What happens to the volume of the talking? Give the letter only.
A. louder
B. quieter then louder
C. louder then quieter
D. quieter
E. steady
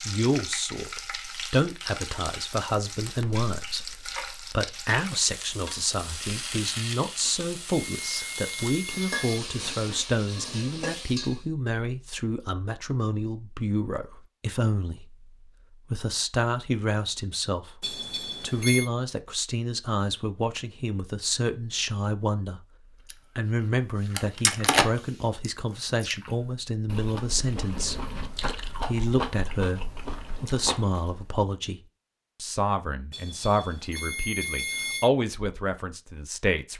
E.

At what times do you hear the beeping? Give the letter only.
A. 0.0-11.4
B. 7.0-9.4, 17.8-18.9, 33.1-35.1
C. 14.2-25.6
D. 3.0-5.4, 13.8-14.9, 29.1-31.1
B.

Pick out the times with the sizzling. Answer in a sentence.
You can hear the sizzling from 0.0 to 11.4 s.